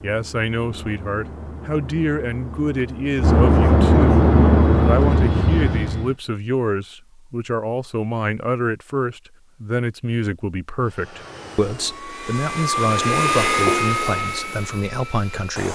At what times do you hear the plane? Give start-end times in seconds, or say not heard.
0.0-6.2, 10.8-15.7.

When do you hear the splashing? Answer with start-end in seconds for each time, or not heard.
13.7-14.3.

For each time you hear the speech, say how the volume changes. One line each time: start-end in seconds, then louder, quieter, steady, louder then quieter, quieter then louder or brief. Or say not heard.
0.0-15.7 steady.